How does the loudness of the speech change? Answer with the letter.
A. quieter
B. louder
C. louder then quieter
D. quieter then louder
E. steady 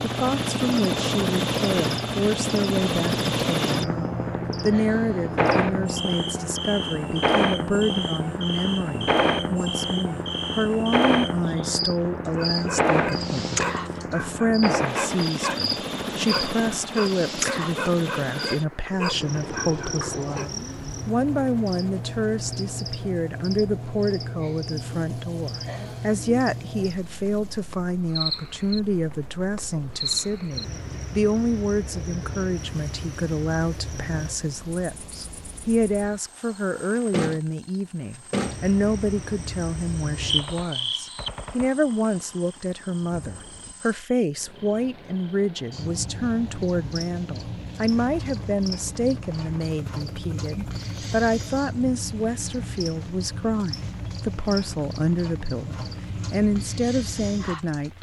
E.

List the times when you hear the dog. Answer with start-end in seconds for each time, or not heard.
12.3-20.5.